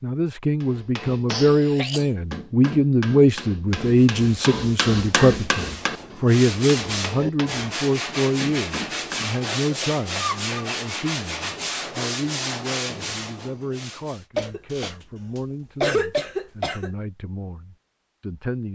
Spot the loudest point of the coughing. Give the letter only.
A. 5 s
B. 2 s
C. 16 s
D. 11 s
C.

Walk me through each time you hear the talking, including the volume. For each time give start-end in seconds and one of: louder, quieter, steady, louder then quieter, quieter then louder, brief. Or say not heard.
0.0-18.6 quieter.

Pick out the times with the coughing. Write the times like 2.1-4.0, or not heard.
1.2-2.1, 9.6-10.7, 14.3-16.9.